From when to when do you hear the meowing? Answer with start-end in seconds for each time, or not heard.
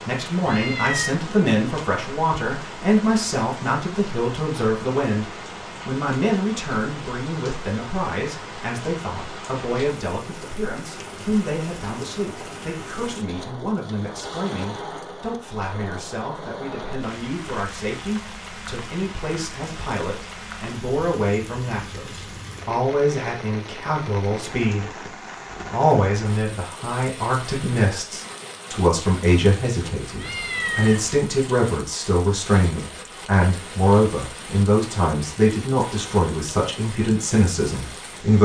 0.5-1.2, 30.1-31.2.